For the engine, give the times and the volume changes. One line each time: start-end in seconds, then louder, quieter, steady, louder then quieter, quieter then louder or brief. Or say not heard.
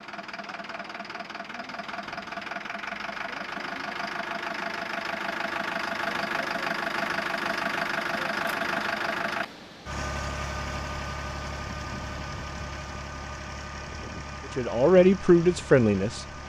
0.0-16.4 louder then quieter.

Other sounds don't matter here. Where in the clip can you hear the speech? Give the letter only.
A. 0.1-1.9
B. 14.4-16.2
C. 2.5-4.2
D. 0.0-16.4
B.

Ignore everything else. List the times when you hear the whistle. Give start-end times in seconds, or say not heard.
not heard.